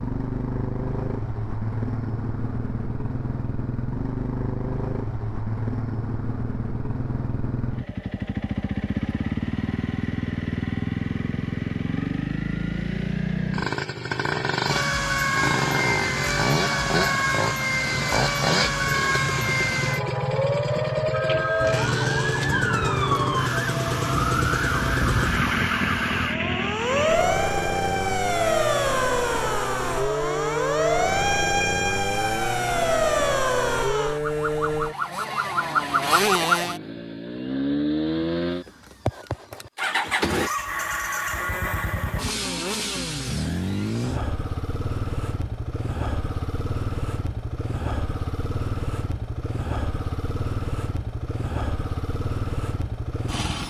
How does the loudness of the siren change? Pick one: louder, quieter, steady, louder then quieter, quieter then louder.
steady.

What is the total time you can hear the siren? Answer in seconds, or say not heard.
22 s.